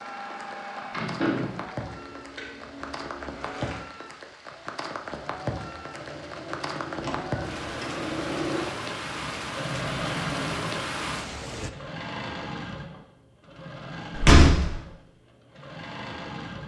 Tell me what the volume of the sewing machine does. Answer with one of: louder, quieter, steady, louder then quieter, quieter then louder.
louder then quieter.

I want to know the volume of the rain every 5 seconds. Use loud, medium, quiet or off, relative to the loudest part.
medium, loud, loud, off.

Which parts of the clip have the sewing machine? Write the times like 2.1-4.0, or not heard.
0.0-16.6.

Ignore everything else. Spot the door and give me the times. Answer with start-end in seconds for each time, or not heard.
0.9-1.6, 7.0-7.9, 14.2-14.8.